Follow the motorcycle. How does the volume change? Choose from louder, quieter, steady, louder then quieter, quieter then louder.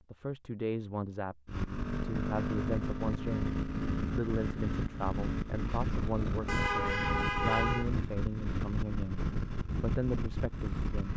steady.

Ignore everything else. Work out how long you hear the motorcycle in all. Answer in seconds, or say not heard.
10 s.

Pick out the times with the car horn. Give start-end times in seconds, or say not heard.
6.5-7.9.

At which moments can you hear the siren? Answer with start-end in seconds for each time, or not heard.
not heard.